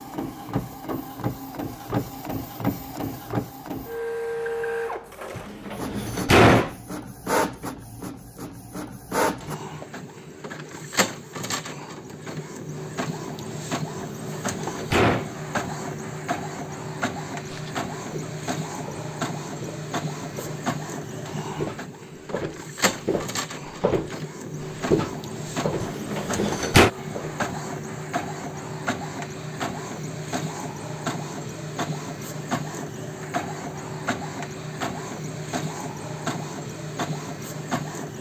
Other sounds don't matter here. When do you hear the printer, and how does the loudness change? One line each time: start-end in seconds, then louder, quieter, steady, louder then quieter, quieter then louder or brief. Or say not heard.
0.0-38.1 steady.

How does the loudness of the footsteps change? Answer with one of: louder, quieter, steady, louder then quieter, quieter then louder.
louder then quieter.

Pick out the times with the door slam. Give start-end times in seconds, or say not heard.
5.3-6.8, 14.1-15.2, 25.8-26.9.